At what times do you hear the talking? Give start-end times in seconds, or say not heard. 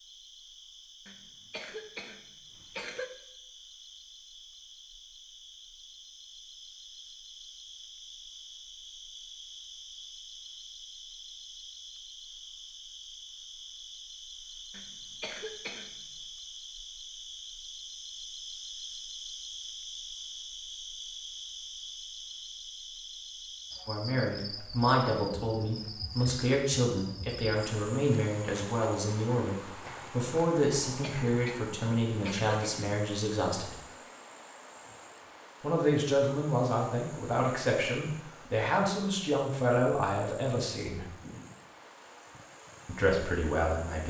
23.9-33.8, 35.6-41.1, 42.9-44.0.